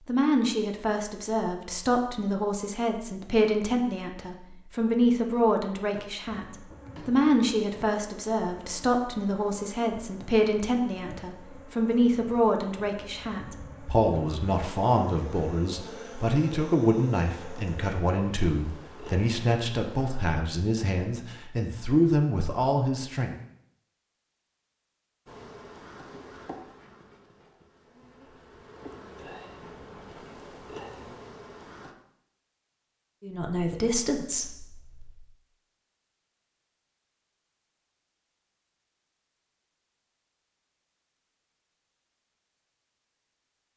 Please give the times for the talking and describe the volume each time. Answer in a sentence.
The talking can be heard from 0.1 to 23.4 s, at a steady volume; and briefly from 33.2 to 35.1 s.